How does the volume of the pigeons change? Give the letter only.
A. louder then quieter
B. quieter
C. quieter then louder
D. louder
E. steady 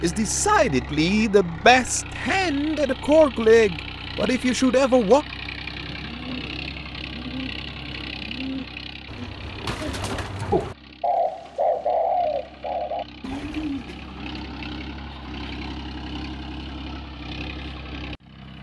A.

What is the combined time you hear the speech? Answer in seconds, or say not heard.
5 s.